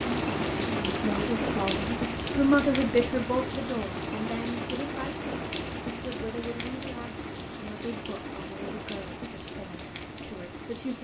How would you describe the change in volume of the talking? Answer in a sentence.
The loudness of the talking goes down.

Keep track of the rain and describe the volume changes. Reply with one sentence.
The volume of the rain goes down.